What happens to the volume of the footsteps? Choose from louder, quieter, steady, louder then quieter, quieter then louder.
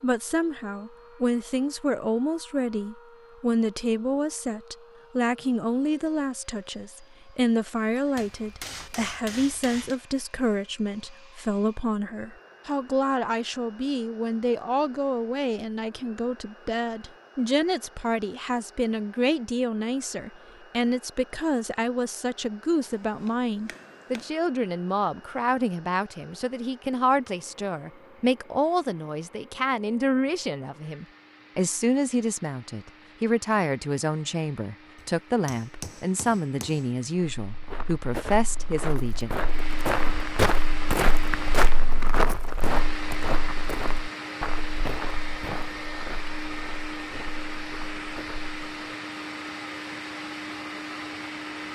louder then quieter.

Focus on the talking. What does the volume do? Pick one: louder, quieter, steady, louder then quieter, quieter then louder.
steady.